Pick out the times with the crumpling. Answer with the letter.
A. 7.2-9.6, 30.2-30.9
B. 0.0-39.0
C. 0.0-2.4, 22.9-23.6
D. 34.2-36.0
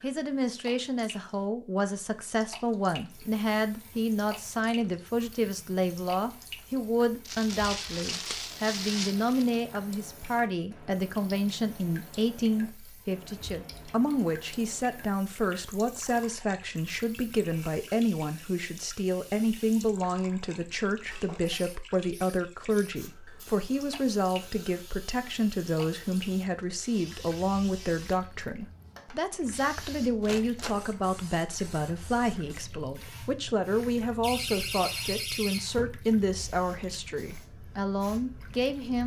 A.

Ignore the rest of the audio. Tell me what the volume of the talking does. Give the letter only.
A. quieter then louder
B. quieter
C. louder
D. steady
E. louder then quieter
D.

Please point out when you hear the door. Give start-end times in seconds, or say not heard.
34.2-36.0.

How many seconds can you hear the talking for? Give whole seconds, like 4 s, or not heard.
39 s.